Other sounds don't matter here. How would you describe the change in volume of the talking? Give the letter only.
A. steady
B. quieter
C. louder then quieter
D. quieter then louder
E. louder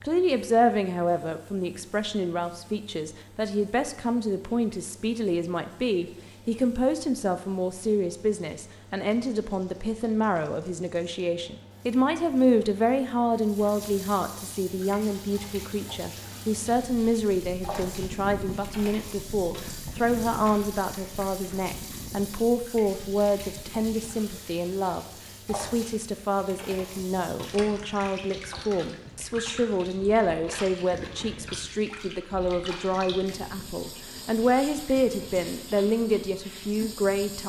A.